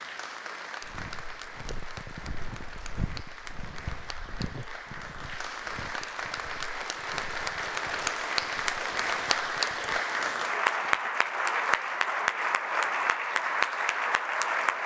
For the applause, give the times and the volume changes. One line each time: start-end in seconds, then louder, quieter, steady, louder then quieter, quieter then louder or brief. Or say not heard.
0.0-14.8 louder.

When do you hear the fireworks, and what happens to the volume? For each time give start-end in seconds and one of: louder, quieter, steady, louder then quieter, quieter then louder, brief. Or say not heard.
not heard.